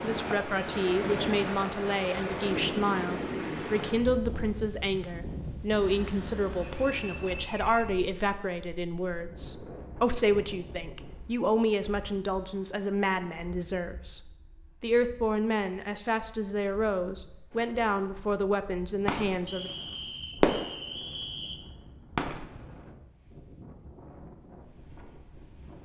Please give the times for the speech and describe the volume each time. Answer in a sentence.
The speech can be heard from 0.0 to 19.7 s, at a steady volume.